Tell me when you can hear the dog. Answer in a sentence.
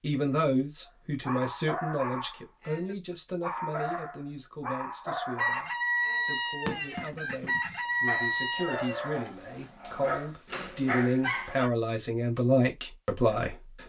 You can hear the dog from 1.2 to 11.7 s.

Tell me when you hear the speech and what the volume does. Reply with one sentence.
You can hear the speech from 0.0 to 13.8 s, getting quieter then louder.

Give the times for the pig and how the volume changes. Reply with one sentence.
You can't hear the pig here.